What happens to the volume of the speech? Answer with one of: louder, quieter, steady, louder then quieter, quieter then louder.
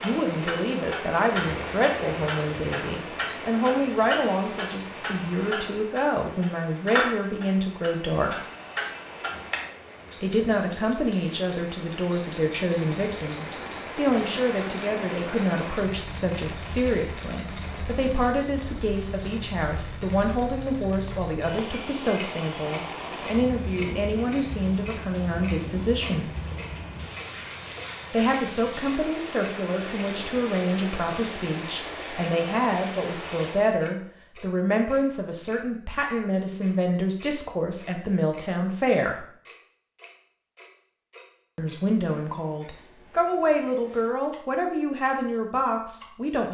steady.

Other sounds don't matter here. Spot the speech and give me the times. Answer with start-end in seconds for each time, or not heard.
0.0-8.3, 10.2-26.3, 28.1-39.2, 41.5-46.4.